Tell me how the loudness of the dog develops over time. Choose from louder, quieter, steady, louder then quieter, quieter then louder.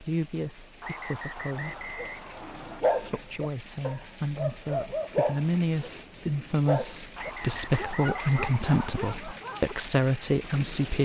quieter.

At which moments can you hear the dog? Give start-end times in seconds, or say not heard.
1.6-9.8.